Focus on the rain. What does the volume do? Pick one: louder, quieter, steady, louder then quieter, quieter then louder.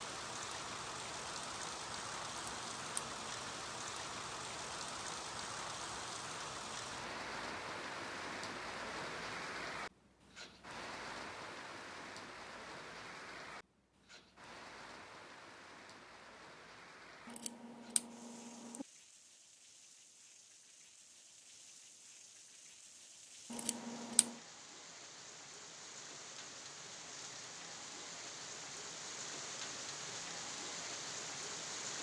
quieter then louder.